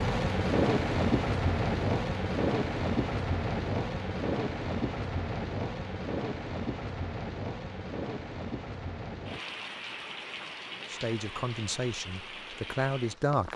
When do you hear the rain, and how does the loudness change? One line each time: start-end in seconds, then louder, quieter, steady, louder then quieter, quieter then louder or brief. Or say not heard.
0.0-13.5 quieter.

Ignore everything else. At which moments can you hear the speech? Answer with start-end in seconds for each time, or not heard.
10.9-13.5.